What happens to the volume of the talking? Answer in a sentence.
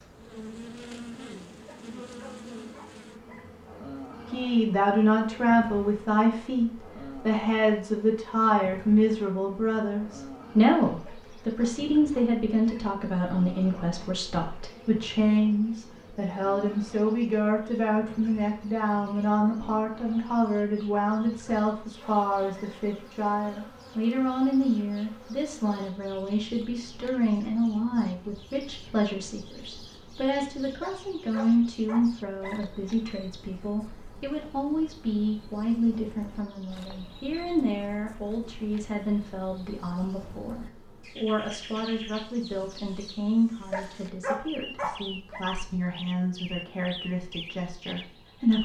The loudness of the talking goes down.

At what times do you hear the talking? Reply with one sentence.
You can hear the talking from 4.3 to 48.5 s.